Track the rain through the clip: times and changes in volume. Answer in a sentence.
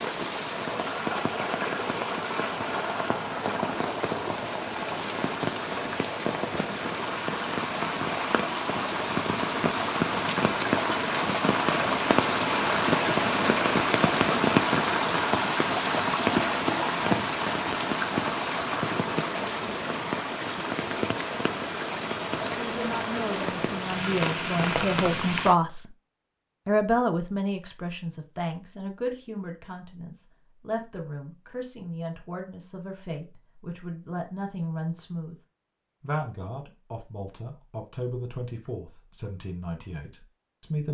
You can hear the rain from 0.0 to 25.6 s, getting louder then quieter.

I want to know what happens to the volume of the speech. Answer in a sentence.
The loudness of the speech goes down.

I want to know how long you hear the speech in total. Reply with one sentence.
You can hear the speech for 17 seconds altogether.